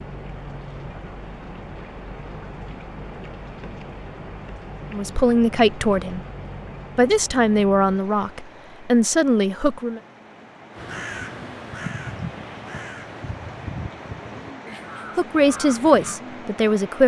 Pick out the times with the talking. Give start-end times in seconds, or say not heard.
4.9-6.2, 7.0-10.0, 15.2-17.0.